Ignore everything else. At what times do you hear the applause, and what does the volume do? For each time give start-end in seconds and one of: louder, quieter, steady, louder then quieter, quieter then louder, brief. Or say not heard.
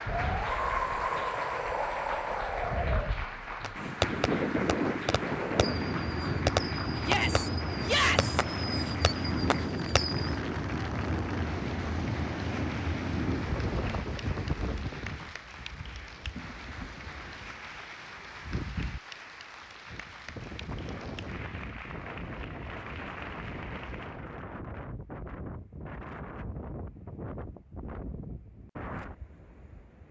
0.0-24.2 quieter.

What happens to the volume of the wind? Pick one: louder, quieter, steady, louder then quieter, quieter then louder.
quieter.